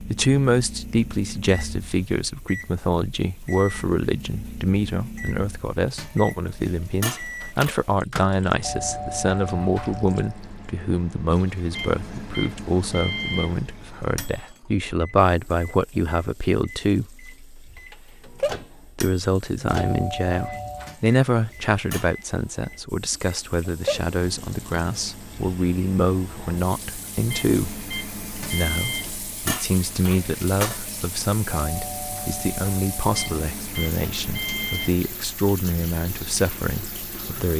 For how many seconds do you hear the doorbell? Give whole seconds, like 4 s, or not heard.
5 s.